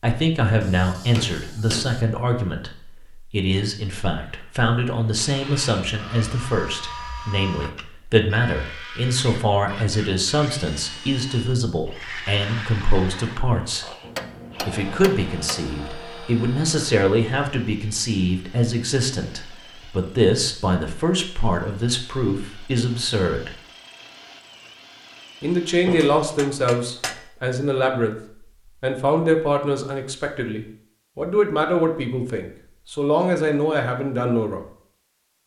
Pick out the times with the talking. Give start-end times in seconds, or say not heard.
0.0-13.8, 14.6-23.5, 25.4-28.1, 28.8-34.6.